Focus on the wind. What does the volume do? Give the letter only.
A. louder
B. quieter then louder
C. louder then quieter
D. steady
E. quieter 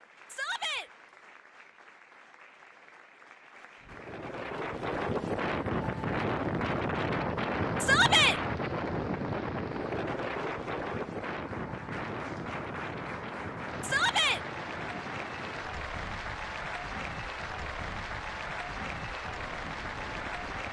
E.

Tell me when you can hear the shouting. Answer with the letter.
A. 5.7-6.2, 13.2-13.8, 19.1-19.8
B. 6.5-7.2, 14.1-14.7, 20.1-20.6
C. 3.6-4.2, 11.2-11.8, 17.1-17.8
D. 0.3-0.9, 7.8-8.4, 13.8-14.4
D.